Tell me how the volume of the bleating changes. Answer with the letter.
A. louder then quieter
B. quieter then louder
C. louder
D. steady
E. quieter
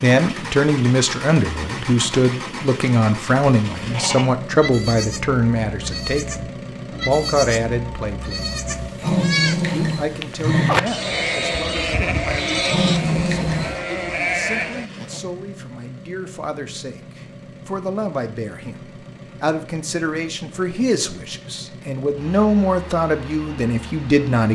C.